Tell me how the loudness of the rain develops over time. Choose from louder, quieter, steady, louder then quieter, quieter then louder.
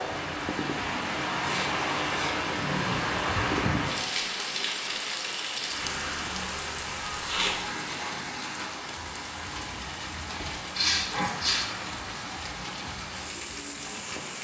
quieter.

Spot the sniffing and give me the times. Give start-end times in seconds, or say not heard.
1.4-2.4, 7.2-7.6, 10.8-11.7.